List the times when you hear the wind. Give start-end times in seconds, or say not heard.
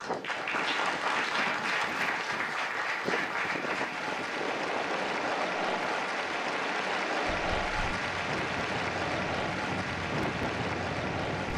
0.0-11.5.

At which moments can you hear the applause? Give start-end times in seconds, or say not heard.
0.0-11.5.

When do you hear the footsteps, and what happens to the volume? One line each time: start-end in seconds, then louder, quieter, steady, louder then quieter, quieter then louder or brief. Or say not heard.
not heard.